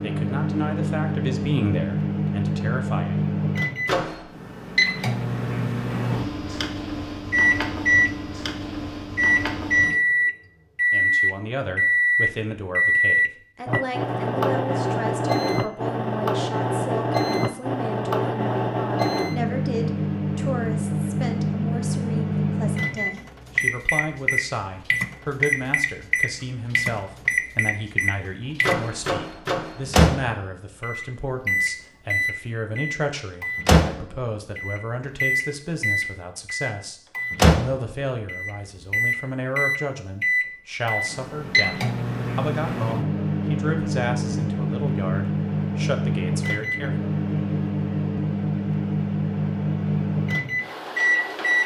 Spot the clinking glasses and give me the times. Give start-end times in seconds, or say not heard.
not heard.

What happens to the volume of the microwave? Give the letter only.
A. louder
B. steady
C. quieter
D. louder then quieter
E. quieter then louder
B.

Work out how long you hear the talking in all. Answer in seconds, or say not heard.
39 s.